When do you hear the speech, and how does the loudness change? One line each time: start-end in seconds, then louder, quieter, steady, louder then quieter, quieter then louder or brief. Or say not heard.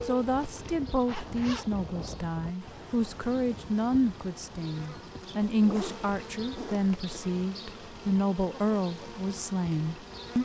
0.1-10.4 steady.